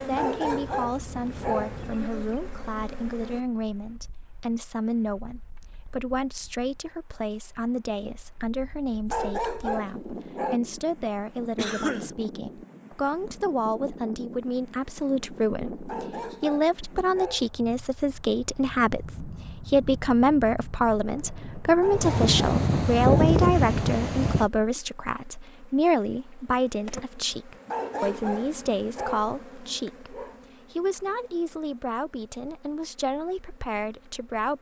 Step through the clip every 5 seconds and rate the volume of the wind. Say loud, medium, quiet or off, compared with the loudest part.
quiet, quiet, quiet, quiet, loud, off, off.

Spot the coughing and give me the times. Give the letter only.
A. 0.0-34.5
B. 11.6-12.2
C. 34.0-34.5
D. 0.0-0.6
B.